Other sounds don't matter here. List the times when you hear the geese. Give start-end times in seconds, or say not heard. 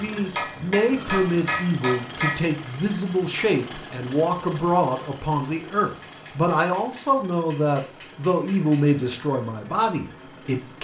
not heard.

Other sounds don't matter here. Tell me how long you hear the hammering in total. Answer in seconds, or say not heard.
5 s.